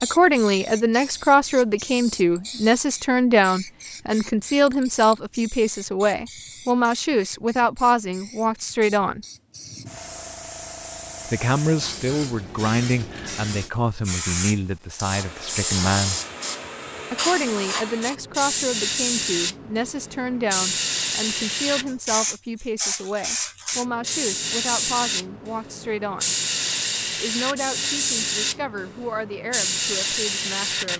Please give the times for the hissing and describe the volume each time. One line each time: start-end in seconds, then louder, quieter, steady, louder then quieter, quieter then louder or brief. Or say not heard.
0.0-30.9 louder.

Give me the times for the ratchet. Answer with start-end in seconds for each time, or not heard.
not heard.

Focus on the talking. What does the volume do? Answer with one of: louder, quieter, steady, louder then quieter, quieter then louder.
quieter.